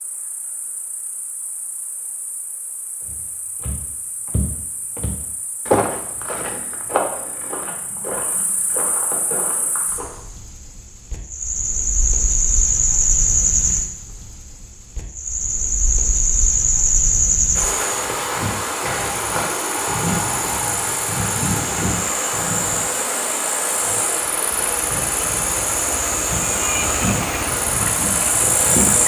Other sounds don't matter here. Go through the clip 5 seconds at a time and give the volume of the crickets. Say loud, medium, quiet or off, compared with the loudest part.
quiet, quiet, loud, loud, loud, loud.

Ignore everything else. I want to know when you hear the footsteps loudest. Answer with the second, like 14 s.
6 s.